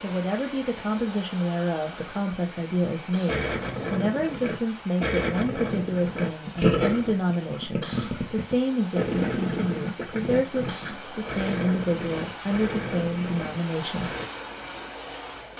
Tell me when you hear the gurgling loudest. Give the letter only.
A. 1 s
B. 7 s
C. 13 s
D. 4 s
B.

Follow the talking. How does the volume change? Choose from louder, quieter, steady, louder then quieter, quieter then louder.
steady.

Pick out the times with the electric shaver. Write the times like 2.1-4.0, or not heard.
not heard.